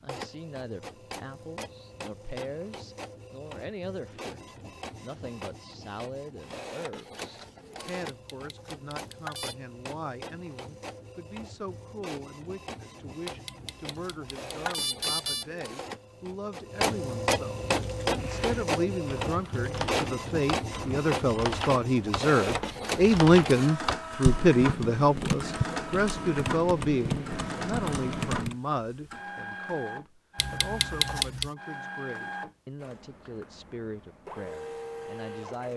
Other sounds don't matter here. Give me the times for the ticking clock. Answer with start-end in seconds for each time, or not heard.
not heard.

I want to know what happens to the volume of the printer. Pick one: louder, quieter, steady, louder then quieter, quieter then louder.
louder then quieter.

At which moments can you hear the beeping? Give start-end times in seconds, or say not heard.
7.8-9.6, 13.2-15.4, 30.4-31.5.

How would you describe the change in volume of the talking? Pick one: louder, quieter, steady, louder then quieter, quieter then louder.
louder then quieter.